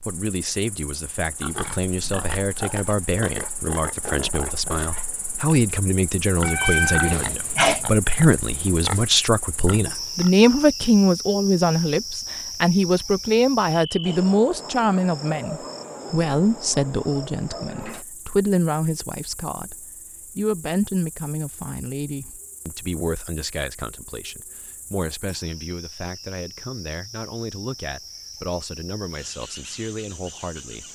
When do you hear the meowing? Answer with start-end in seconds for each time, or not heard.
6.4-7.8.